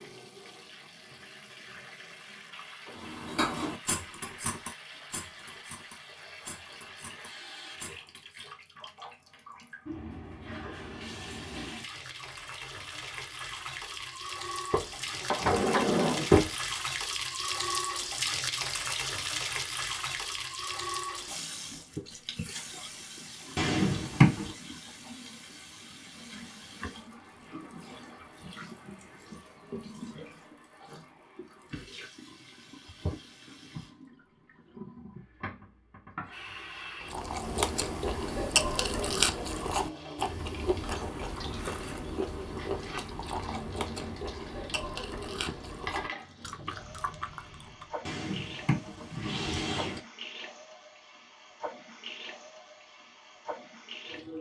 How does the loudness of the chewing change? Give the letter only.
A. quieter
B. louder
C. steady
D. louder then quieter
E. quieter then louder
A.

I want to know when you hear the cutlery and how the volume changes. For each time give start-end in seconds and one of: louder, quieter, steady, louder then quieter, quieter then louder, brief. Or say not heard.
2.9-8.4 quieter.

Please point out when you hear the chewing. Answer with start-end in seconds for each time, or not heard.
37.0-47.9.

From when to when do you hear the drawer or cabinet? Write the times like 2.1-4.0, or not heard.
14.7-16.5, 23.6-24.5, 48.0-50.0.